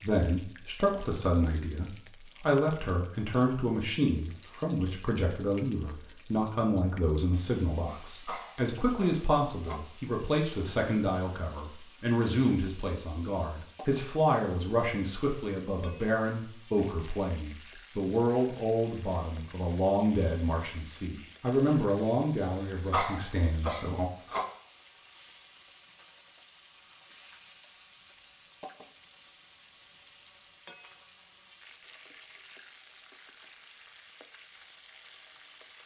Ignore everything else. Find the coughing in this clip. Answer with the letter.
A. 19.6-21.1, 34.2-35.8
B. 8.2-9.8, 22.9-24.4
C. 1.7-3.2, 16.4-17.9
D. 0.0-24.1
B.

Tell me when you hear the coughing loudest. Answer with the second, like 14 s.
23 s.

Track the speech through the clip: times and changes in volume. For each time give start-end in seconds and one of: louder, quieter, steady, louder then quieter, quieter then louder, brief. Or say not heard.
0.0-24.1 steady.